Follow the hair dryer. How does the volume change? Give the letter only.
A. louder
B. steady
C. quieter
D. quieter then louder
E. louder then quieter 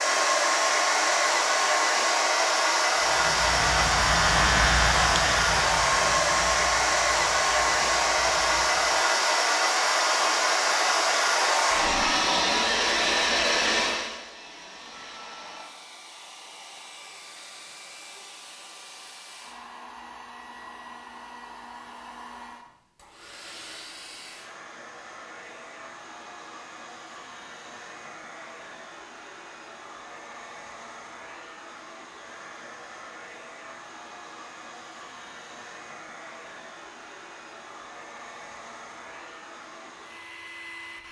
C.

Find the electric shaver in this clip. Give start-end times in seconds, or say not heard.
3.0-9.1.